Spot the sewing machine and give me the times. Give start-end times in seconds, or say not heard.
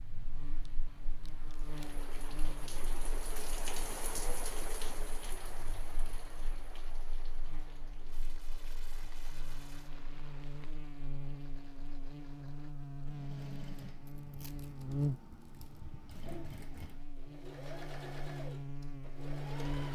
8.9-19.9.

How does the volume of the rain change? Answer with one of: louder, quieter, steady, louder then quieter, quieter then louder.
louder then quieter.